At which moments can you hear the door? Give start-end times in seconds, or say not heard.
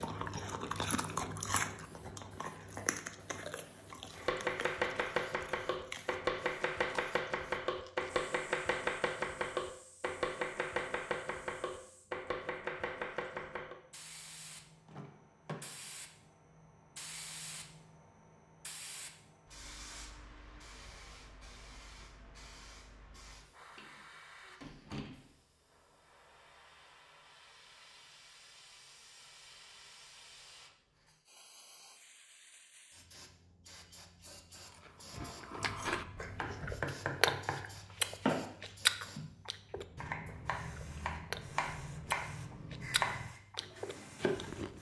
14.8-15.9, 23.8-25.3.